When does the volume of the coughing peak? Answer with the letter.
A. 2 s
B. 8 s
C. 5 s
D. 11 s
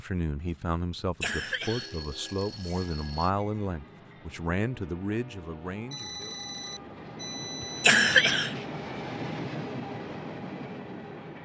B.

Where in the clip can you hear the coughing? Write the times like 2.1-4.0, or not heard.
0.9-2.9, 7.6-8.6.